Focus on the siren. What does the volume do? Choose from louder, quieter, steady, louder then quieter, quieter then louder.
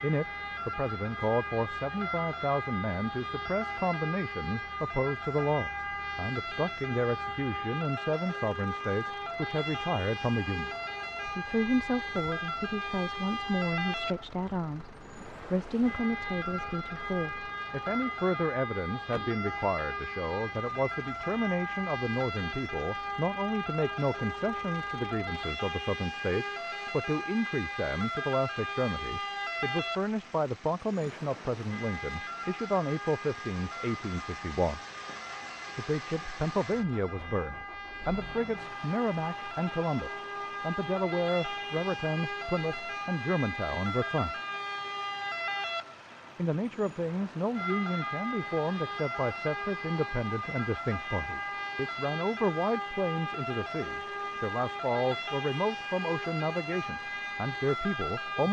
steady.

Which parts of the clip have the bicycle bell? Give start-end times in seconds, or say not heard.
not heard.